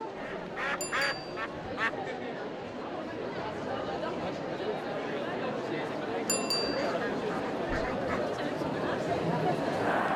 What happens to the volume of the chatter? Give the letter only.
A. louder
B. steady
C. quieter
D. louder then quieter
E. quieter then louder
A.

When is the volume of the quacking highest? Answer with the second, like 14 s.
1 s.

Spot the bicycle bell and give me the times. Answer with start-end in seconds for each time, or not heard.
0.8-1.4, 6.2-6.9.